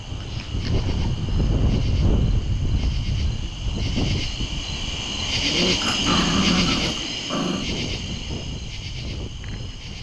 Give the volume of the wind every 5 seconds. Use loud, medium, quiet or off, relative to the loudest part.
loud, medium.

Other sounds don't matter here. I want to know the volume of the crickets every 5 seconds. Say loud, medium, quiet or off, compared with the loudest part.
medium, loud.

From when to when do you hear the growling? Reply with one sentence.
You can hear the growling from 0.2 to 1.1 s and from 5.4 to 7.7 s.